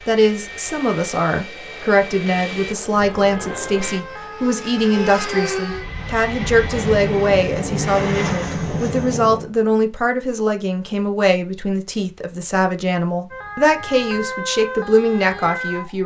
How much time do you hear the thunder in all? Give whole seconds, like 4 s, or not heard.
3 s.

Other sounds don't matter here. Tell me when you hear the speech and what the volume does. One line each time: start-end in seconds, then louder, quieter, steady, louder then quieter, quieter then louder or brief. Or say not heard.
0.1-16.0 steady.